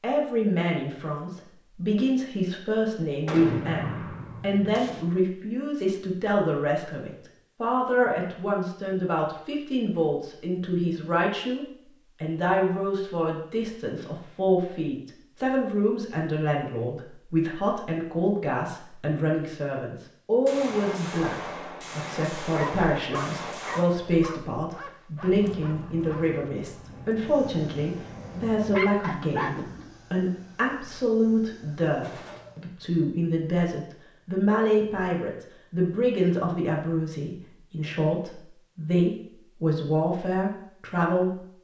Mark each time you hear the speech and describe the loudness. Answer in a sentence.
The speech can be heard from 0.0 to 41.5 s, at a steady volume.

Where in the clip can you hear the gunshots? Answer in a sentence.
The gunshots can be heard from 3.2 to 5.0 s, from 20.4 to 23.9 s and from 32.0 to 32.5 s.